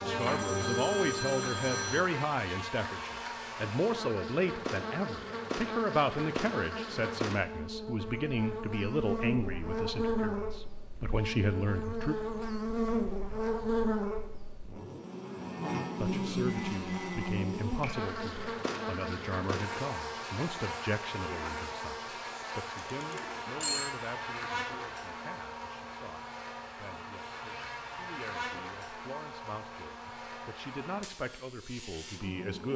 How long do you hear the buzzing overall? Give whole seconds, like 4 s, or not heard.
33 s.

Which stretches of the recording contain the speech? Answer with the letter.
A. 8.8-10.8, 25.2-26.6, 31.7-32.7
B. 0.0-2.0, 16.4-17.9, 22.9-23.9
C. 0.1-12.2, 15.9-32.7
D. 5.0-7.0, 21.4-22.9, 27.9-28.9
C.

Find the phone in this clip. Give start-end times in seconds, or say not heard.
0.0-2.0, 16.4-17.9, 22.9-23.9.